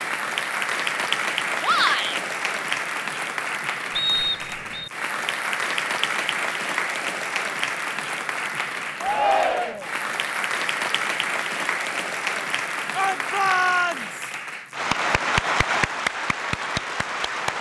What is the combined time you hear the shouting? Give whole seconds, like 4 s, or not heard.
3 s.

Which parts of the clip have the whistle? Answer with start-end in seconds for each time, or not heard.
4.0-4.9.